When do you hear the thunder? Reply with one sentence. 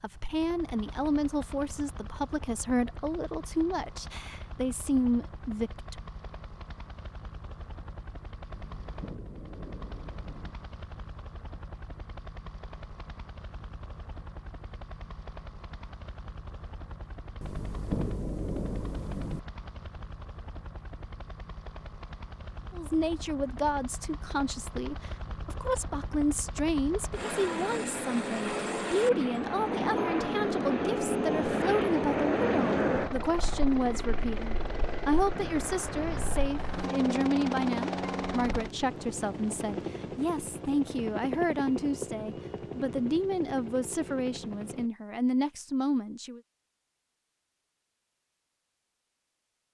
The thunder can be heard from 8.5 to 10.6 s, from 17.4 to 19.4 s and from 34.8 to 36.6 s.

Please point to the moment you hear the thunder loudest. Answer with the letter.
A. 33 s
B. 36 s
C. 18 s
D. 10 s
C.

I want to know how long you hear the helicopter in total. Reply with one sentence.
You can hear the helicopter for 45 seconds altogether.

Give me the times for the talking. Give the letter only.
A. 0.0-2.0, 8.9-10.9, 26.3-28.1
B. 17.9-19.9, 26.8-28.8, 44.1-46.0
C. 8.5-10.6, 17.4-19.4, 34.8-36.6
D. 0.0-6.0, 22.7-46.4
D.